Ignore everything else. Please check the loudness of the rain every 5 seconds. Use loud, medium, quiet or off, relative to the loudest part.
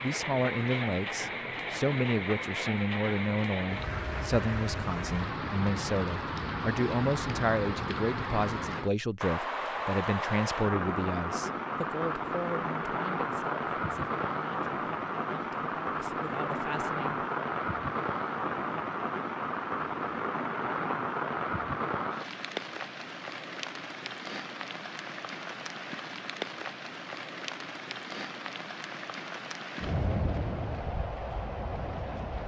loud, loud, loud, loud, loud, medium, loud.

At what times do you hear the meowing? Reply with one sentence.
The meowing can't be heard in this clip.